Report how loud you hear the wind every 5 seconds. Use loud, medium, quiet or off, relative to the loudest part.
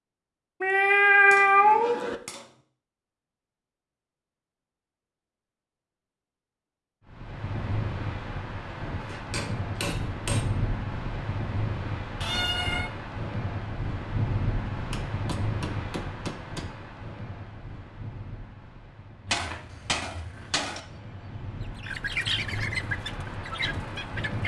off, loud, loud, medium, medium.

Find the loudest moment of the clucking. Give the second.
22 s.